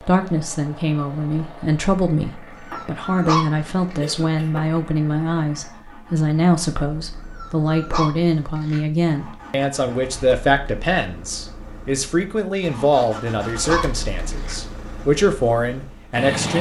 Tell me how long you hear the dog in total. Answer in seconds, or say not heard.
4 s.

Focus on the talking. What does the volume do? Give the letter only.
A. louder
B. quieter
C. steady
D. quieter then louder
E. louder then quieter
C.